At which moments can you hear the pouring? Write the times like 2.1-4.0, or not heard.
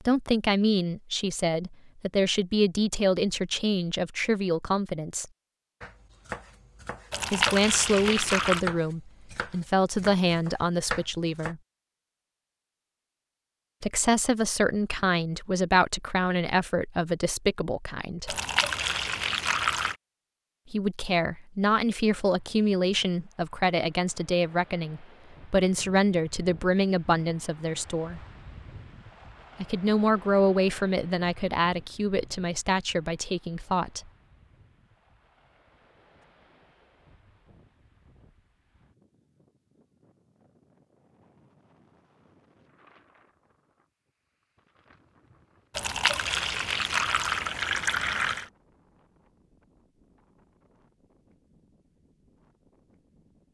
7.1-8.7, 18.2-19.9, 45.8-48.5.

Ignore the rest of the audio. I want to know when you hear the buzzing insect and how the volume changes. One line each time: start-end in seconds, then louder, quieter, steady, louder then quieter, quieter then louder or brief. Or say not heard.
not heard.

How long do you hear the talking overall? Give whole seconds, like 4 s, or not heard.
26 s.